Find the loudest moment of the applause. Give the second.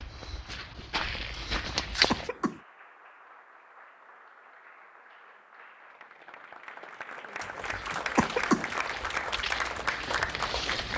10 s.